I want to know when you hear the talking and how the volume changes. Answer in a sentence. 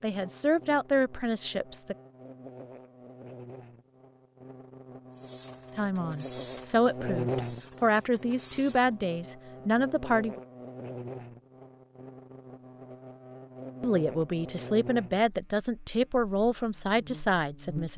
The talking can be heard briefly from 0.0 to 1.9 s; from 5.8 to 10.4 s, getting quieter then louder; and from 13.8 to 17.9 s, at a steady volume.